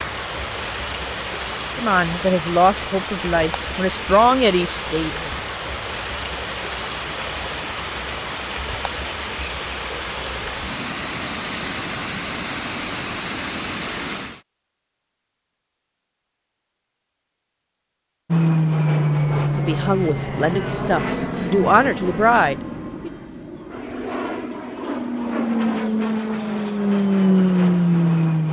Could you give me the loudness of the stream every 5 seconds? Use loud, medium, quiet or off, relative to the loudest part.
loud, loud, loud, off, off, off.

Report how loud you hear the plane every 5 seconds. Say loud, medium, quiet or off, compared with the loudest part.
off, off, off, loud, medium, loud.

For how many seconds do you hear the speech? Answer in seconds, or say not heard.
7 s.